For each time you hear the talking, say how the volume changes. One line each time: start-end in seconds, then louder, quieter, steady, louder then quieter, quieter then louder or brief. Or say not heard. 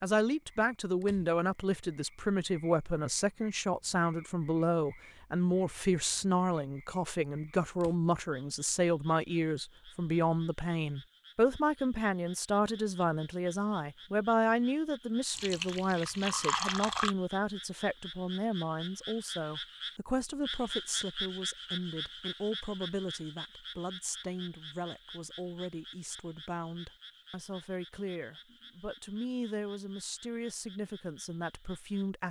0.0-32.2 quieter.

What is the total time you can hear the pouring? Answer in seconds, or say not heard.
2 s.